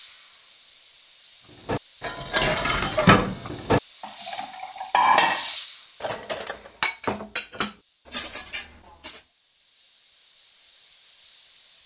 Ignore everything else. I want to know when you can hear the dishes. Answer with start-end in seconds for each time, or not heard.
1.6-9.2.